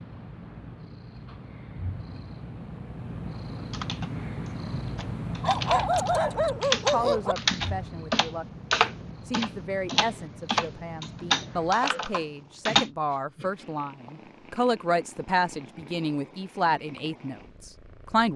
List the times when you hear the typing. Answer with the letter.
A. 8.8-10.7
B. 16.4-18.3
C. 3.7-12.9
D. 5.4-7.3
C.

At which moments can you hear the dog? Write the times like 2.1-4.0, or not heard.
5.4-7.3.